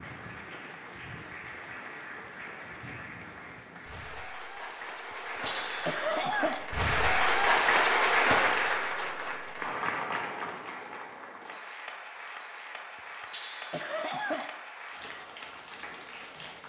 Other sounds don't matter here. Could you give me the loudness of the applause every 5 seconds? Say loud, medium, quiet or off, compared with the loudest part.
quiet, loud, quiet, quiet.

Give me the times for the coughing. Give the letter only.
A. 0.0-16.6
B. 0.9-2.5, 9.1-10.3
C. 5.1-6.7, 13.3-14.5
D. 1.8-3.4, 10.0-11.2
C.